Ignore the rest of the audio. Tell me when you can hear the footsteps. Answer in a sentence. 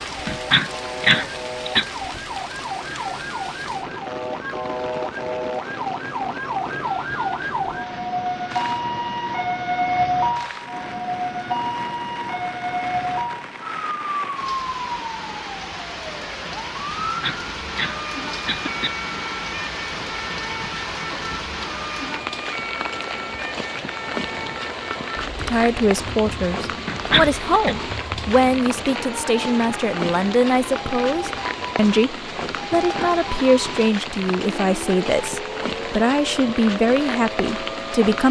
The footsteps can't be heard in this clip.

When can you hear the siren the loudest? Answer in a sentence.
The volume of the siren peaks at 10 seconds.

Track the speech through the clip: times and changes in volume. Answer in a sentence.
The speech can be heard from 25.4 to 38.2 s, at a steady volume.